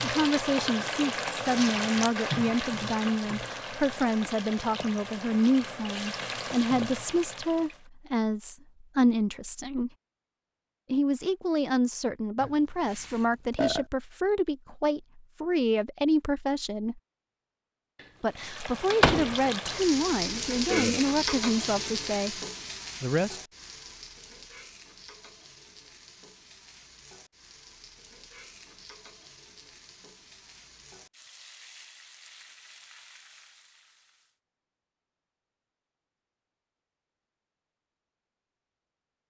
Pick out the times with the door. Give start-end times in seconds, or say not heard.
18.4-19.5.